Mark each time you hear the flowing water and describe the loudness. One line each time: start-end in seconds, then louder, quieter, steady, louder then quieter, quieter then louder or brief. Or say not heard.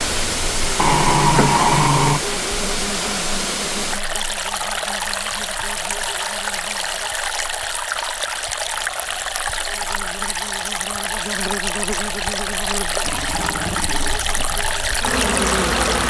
0.0-16.0 steady.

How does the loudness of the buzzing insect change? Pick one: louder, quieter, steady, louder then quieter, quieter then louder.
quieter then louder.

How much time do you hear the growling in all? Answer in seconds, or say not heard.
3 s.